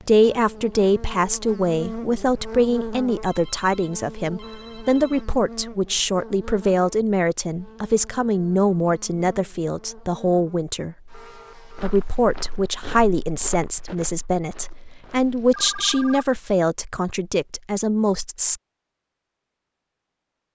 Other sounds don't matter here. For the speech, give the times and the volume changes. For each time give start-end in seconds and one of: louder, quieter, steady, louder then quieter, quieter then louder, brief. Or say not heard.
0.0-18.6 steady.